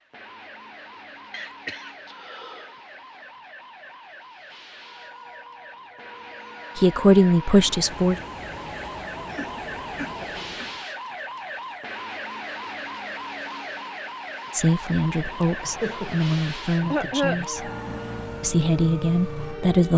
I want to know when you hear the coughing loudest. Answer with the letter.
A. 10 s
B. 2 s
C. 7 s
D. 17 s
D.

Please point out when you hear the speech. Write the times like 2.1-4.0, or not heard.
6.8-8.2, 14.5-17.7, 18.4-19.9.